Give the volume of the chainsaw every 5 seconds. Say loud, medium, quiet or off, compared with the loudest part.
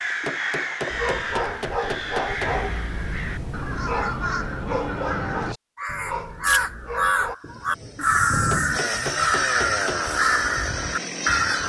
off, loud, loud.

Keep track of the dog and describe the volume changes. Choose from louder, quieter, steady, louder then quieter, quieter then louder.
quieter.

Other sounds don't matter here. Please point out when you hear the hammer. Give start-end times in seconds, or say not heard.
0.2-2.6, 8.5-10.0.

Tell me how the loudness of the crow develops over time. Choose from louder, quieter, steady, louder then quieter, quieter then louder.
louder.